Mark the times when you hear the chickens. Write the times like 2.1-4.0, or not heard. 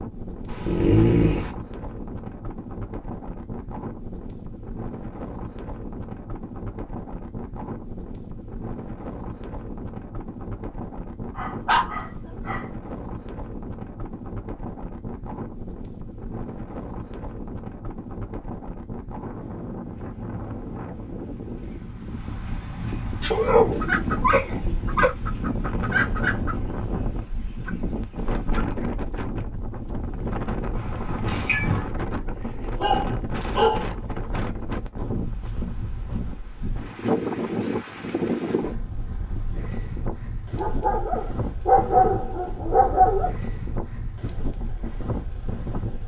23.1-28.7.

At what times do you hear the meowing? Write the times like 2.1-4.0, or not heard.
30.8-31.9.